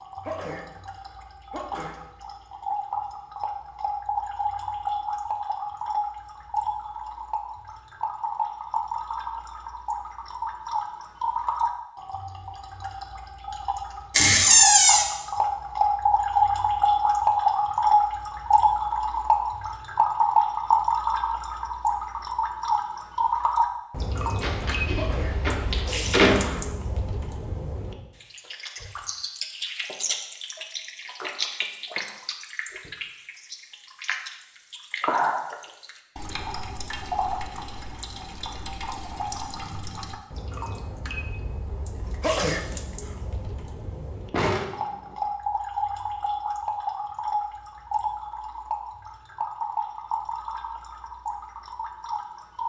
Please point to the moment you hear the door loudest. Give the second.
15 s.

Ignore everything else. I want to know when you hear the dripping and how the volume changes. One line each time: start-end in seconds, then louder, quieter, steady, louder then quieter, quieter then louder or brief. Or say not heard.
0.0-52.6 louder then quieter.